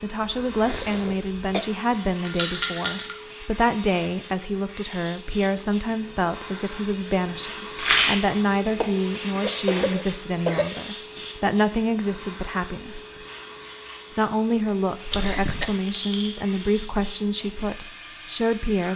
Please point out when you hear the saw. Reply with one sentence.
The saw can't be heard in this clip.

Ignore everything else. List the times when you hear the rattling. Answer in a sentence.
You can hear the rattling from 2.2 to 3.1 s, from 7.8 to 8.2 s and from 15.4 to 16.4 s.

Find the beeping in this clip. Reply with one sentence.
You can't hear the beeping here.